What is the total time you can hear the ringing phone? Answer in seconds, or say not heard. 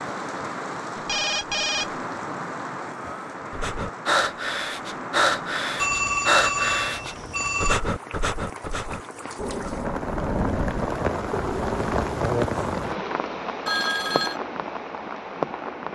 4 s.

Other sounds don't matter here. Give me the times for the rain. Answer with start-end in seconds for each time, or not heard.
0.0-15.8.